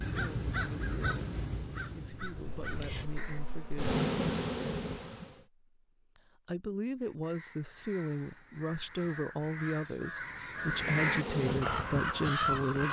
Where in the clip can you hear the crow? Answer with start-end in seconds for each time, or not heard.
0.0-3.4, 7.0-12.8.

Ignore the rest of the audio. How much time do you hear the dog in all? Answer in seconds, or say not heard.
not heard.